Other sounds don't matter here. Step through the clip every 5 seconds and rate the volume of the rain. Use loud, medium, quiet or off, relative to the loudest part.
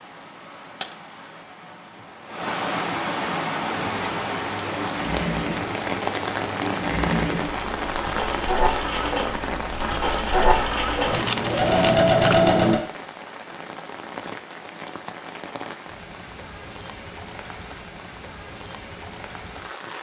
loud, loud, medium, medium.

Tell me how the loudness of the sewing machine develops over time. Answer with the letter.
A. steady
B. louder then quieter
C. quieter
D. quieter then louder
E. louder
E.